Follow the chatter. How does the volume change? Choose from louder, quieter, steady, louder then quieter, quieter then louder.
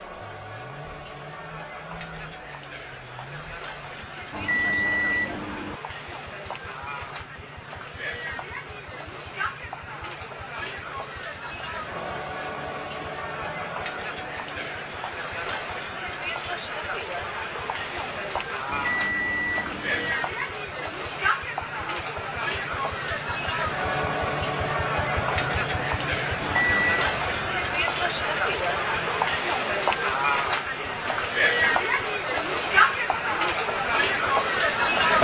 louder.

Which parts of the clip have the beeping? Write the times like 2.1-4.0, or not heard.
4.3-5.8, 18.6-20.1, 26.4-27.1.